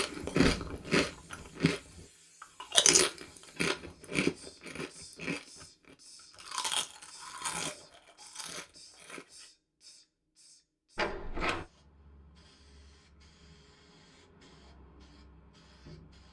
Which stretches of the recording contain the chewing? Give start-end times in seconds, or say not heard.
0.0-9.4.